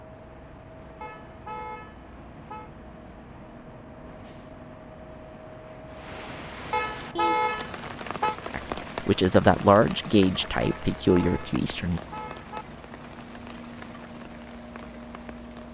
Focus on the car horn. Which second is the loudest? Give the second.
7 s.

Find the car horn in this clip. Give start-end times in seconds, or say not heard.
1.0-2.7, 6.7-8.3, 10.6-12.7.